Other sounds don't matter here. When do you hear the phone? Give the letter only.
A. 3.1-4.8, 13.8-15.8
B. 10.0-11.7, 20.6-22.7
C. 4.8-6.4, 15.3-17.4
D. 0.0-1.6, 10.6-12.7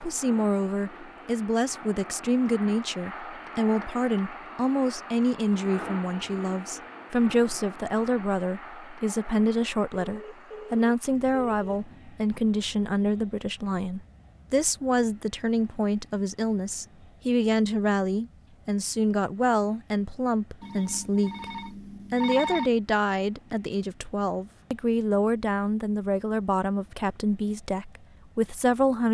B.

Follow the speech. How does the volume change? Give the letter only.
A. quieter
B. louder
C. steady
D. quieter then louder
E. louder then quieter
C.